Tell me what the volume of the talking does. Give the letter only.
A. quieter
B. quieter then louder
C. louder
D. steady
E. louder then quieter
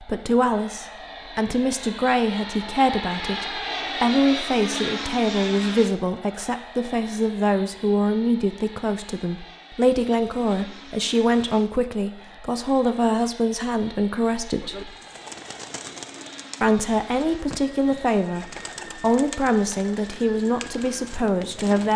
D.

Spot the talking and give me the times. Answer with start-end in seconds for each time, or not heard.
0.0-14.9, 16.6-21.9.